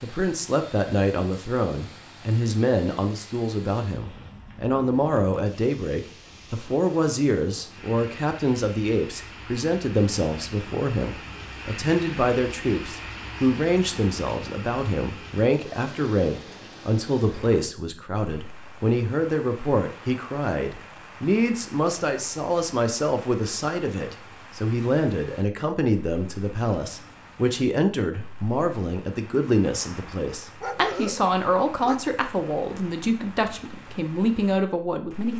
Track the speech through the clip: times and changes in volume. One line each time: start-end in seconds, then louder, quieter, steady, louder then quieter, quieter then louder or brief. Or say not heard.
0.0-35.3 steady.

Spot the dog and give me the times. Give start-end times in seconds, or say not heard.
30.6-32.0.